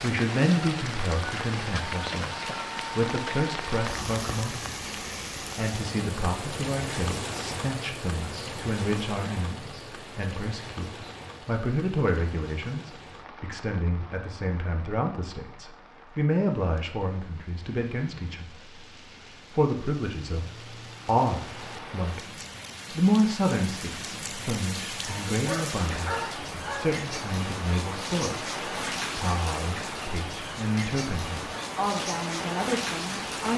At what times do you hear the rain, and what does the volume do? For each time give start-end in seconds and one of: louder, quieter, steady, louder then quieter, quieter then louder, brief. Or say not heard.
0.0-33.5 quieter then louder.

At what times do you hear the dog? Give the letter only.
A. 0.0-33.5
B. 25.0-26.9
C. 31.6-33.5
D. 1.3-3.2
B.